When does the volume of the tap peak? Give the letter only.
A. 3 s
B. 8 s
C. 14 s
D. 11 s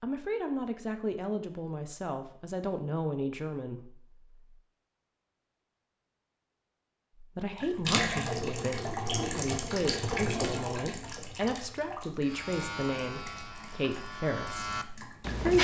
B.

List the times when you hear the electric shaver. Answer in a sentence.
The electric shaver can be heard from 12.2 to 15.5 s.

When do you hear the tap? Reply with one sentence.
You can hear the tap from 7.5 to 15.5 s.